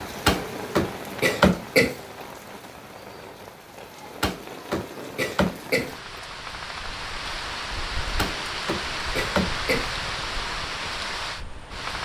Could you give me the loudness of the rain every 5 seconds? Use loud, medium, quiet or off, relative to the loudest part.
medium, loud, loud.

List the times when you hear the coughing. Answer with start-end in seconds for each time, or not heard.
0.2-2.0, 4.2-6.2, 8.2-9.9.